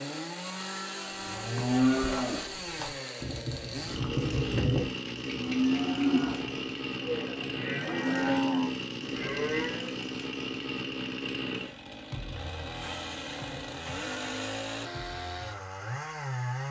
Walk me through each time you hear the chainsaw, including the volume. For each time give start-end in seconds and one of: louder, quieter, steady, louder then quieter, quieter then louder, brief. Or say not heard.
0.0-16.6 steady.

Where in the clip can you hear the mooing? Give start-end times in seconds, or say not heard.
1.1-9.9.